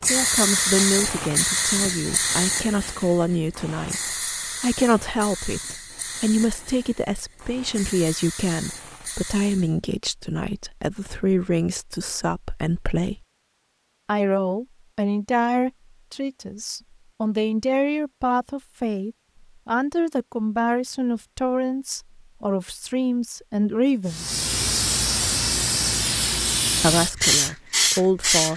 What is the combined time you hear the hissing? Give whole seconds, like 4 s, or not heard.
14 s.